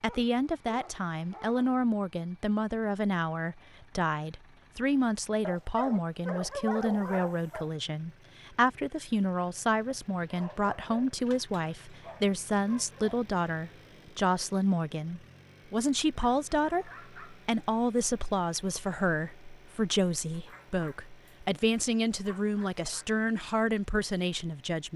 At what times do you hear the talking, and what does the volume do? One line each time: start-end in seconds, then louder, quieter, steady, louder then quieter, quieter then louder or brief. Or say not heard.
0.0-24.9 steady.